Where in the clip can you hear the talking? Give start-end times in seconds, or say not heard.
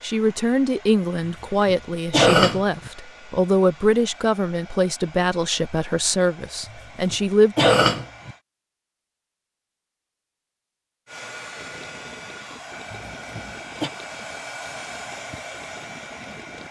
0.0-7.5.